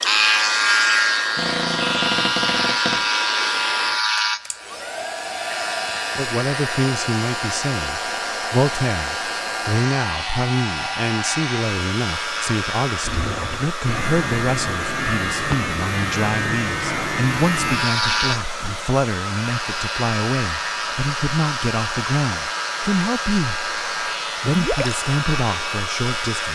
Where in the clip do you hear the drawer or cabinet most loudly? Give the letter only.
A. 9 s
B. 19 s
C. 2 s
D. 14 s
C.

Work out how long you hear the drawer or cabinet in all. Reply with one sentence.
The drawer or cabinet can be heard for 3 seconds in total.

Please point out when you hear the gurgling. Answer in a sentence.
You can hear the gurgling from 24.4 to 25.0 s.